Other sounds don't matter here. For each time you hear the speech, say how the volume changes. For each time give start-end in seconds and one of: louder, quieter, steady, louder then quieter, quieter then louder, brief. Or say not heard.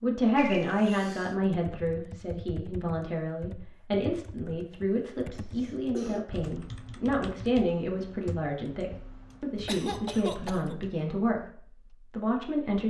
0.0-12.8 steady.